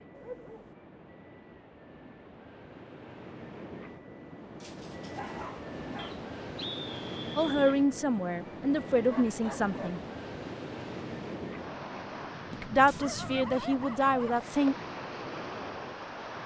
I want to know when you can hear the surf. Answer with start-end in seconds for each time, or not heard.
0.0-16.4.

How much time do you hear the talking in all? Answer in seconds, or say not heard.
5 s.